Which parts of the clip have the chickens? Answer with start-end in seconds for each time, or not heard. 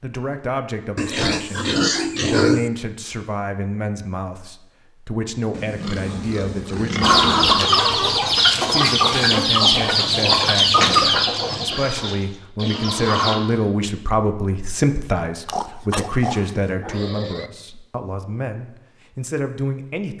7.0-13.3.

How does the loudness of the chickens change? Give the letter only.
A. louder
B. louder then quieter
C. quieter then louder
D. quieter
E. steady
D.